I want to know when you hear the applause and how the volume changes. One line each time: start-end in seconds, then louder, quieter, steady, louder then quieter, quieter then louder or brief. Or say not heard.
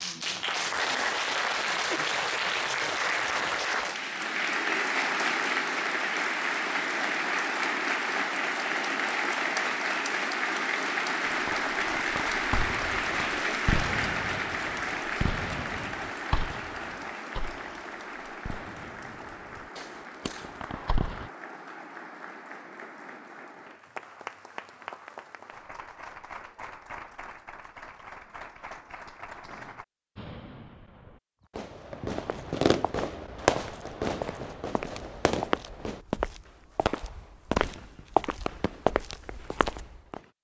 0.0-29.9 quieter.